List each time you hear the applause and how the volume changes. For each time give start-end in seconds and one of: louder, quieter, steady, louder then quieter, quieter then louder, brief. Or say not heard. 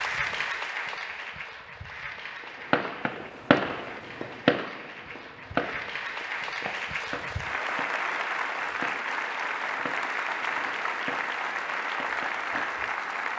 0.0-13.3 quieter then louder.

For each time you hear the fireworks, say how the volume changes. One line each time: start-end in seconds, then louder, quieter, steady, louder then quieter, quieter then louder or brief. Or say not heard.
2.4-12.8 quieter.